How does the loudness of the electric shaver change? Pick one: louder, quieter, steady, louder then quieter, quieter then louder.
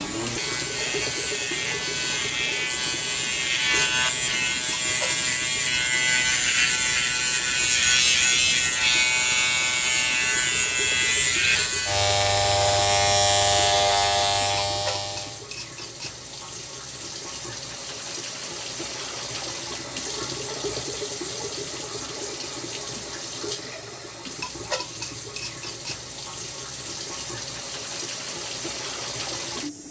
louder.